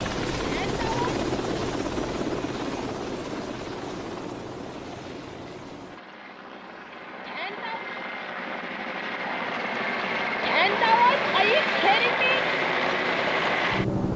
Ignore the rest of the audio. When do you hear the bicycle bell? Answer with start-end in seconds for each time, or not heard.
not heard.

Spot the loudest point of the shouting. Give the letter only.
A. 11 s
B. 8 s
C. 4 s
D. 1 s
A.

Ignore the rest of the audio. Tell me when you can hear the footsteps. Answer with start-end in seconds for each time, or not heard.
not heard.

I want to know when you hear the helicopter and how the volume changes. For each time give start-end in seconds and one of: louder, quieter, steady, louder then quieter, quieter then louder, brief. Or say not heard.
0.0-14.1 quieter then louder.